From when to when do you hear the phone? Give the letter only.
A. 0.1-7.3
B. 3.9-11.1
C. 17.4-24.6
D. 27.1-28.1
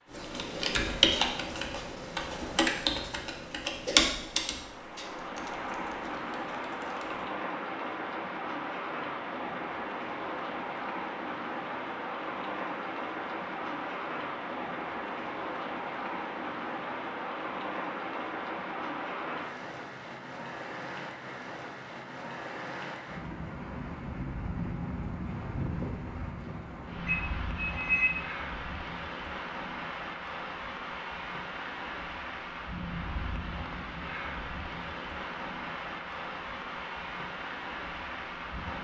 D.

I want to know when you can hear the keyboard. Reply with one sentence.
You can hear the keyboard from 0.1 to 7.3 s.